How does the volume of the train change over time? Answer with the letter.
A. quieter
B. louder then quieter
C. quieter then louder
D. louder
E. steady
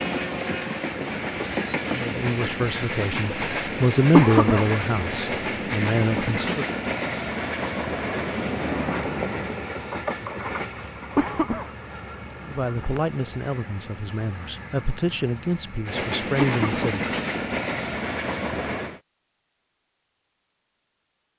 C.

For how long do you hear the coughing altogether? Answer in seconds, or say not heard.
2 s.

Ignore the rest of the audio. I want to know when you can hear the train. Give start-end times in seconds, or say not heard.
0.0-19.0.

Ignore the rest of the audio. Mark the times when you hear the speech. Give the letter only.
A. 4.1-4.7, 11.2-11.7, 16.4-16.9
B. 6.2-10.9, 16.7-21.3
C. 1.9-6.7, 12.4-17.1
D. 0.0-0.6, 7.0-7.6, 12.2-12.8
C.